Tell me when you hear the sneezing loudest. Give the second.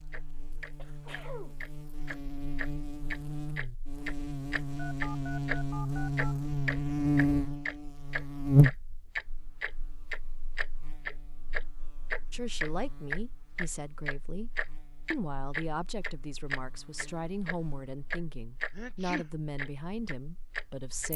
19 s.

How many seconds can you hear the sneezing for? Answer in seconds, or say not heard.
2 s.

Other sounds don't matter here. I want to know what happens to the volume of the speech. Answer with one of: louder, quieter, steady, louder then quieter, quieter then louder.
steady.